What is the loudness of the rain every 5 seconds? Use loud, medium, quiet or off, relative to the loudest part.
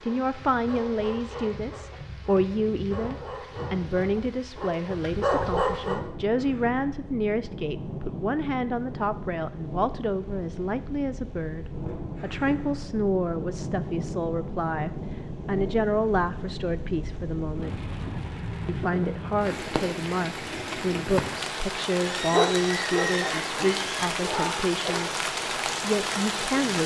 quiet, medium, medium, medium, loud, loud.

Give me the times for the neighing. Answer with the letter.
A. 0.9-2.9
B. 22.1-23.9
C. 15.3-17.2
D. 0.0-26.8
B.